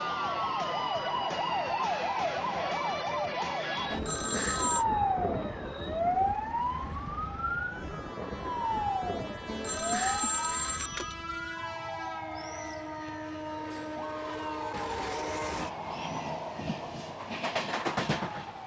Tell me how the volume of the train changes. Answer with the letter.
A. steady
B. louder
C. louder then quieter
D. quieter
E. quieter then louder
B.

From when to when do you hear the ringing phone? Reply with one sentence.
You can hear the ringing phone from 3.9 to 4.8 s and from 9.4 to 11.2 s.